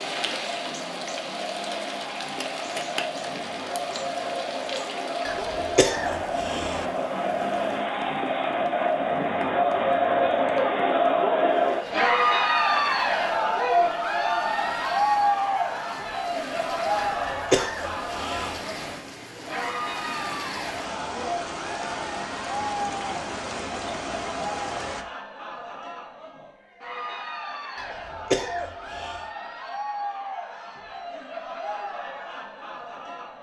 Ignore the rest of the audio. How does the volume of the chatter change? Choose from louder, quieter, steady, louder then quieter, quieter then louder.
louder then quieter.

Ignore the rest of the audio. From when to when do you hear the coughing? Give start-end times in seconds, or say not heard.
5.2-6.8, 16.9-18.6, 27.8-29.2.